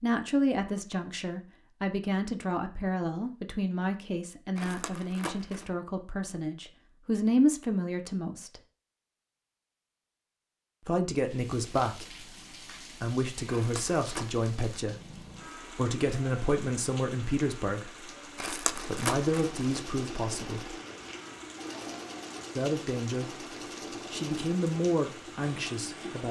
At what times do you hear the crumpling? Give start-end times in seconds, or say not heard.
4.5-5.7, 13.4-14.5, 18.4-19.8.